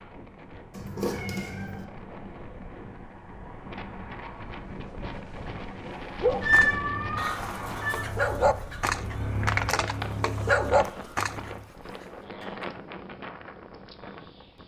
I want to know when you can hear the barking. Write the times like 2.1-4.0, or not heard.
5.8-11.7.